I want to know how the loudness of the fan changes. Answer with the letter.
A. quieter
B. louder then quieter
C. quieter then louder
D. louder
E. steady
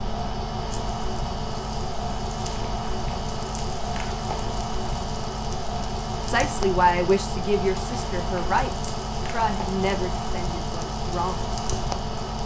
E.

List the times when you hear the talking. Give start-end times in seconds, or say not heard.
6.2-11.5.